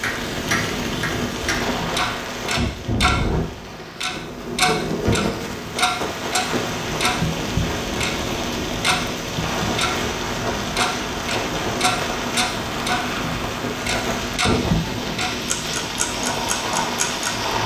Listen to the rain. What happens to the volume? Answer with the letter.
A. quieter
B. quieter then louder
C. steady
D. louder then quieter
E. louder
C.